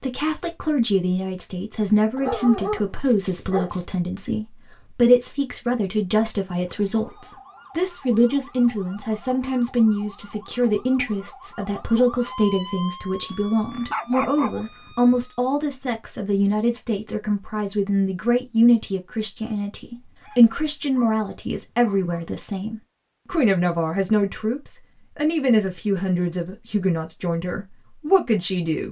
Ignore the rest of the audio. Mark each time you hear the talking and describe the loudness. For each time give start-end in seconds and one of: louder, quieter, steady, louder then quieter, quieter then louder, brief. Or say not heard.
0.0-28.8 steady.